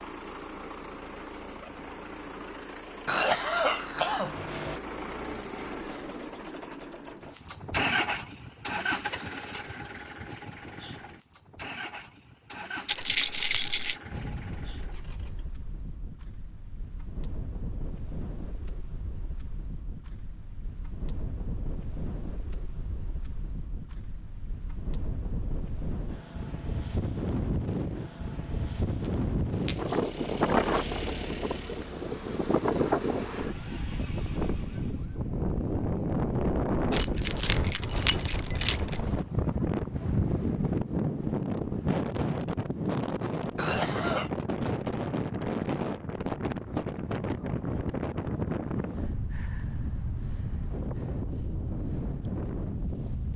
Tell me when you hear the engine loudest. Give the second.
8 s.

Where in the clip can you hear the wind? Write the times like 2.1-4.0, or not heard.
14.1-53.3.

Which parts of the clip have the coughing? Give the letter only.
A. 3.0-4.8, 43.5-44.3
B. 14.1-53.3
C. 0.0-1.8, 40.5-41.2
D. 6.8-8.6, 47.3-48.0
A.